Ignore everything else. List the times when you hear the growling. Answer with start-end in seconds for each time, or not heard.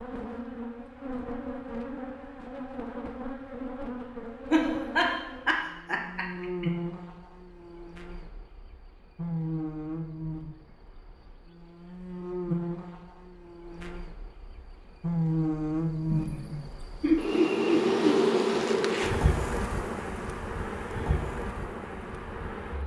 not heard.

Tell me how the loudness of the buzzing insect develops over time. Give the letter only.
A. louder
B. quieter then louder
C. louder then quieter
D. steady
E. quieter
A.